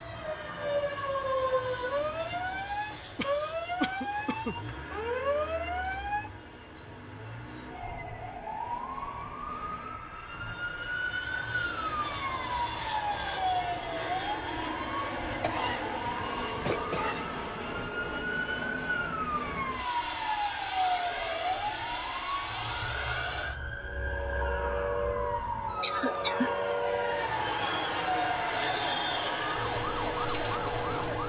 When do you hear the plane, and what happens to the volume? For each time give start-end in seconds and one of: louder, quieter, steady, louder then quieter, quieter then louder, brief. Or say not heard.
0.0-31.2 louder.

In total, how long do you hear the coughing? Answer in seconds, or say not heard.
4 s.